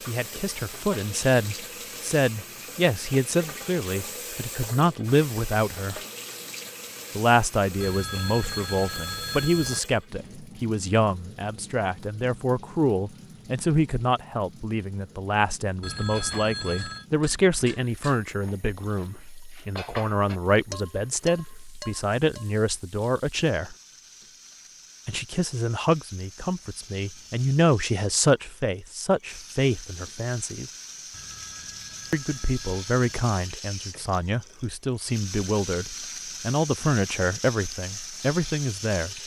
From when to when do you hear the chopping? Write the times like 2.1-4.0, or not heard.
not heard.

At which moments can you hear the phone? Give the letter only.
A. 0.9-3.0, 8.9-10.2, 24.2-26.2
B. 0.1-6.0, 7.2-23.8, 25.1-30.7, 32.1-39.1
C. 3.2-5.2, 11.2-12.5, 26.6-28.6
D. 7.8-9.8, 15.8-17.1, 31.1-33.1
D.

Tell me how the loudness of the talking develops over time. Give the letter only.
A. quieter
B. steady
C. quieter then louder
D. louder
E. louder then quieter
B.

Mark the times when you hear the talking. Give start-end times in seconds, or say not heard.
0.1-6.0, 7.2-23.8, 25.1-30.7, 32.1-39.1.